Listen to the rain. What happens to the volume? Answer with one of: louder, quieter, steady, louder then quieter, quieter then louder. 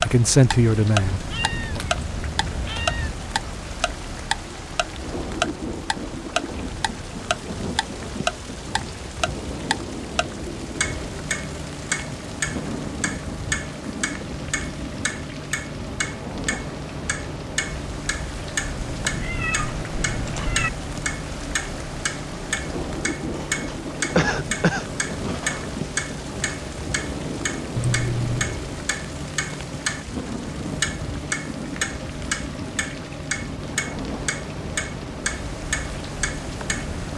steady.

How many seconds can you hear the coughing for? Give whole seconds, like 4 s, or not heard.
2 s.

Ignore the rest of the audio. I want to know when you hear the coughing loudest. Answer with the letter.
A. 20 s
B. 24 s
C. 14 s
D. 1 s
B.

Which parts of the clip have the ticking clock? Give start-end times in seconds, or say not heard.
0.0-37.1.